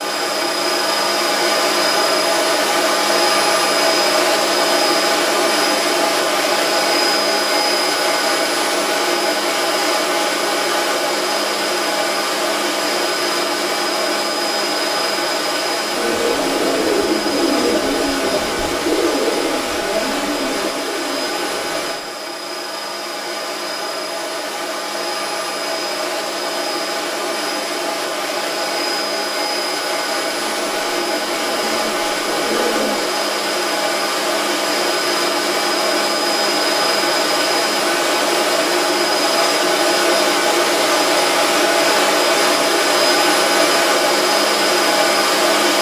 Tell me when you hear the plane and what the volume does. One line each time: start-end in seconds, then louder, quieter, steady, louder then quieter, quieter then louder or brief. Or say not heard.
0.0-45.7 quieter then louder.